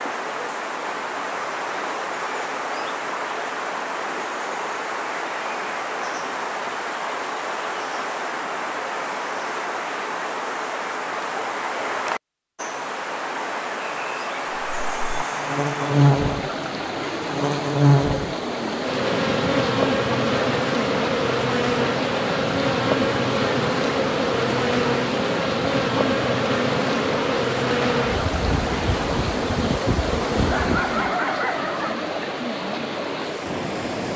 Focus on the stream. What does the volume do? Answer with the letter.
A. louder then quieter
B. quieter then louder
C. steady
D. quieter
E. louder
C.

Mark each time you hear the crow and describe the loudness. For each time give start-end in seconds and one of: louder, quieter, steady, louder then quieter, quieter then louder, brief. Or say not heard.
not heard.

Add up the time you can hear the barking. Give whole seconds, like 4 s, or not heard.
2 s.